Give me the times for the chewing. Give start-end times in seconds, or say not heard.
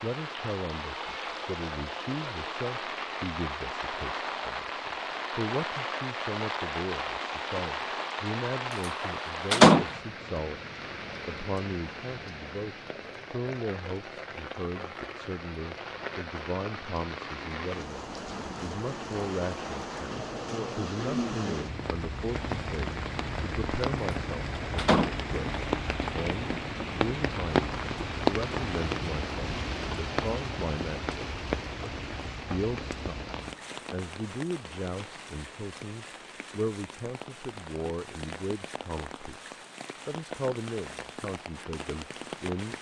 not heard.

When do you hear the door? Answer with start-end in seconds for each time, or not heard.
9.0-9.8, 24.3-25.1.